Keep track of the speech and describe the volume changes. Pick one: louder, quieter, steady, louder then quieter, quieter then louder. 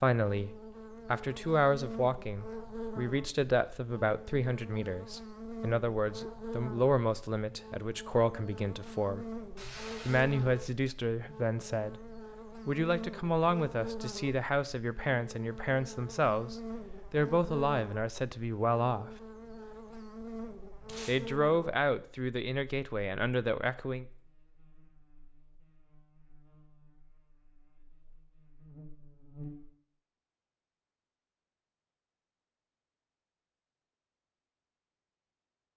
steady.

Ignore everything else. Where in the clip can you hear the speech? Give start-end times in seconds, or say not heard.
0.0-9.2, 10.1-19.1, 21.1-24.1.